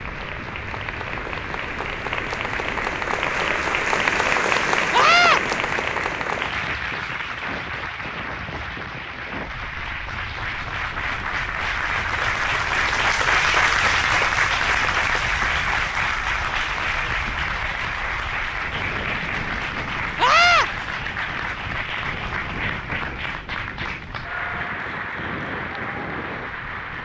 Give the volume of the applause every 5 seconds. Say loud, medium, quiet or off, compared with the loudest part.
loud, medium, loud, loud, medium, medium.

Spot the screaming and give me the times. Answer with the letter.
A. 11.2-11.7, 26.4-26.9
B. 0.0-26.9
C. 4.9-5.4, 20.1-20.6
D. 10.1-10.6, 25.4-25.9
C.